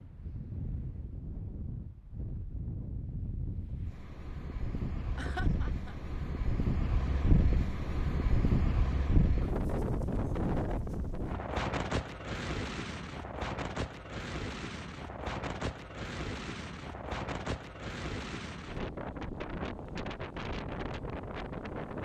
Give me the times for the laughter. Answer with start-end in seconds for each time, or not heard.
5.2-6.0.